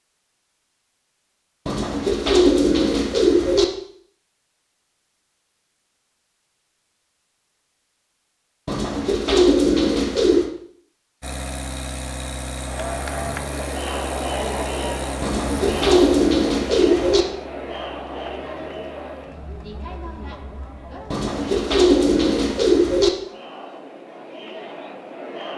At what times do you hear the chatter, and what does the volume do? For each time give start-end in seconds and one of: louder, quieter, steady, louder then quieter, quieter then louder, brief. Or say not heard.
12.6-25.5 quieter.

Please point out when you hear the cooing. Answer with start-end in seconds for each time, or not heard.
1.6-3.6, 8.7-10.5, 15.2-17.2, 21.1-23.1.